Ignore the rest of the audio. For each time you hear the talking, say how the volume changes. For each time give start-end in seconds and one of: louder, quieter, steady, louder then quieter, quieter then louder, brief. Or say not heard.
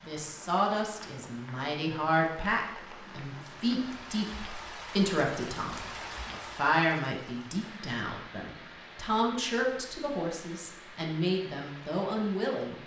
0.0-12.8 steady.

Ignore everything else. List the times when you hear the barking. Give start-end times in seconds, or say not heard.
not heard.